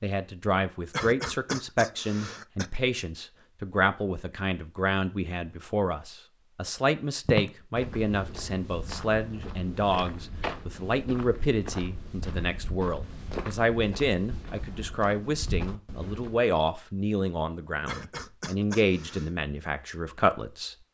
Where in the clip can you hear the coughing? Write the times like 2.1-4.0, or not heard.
0.9-2.7, 17.9-19.3.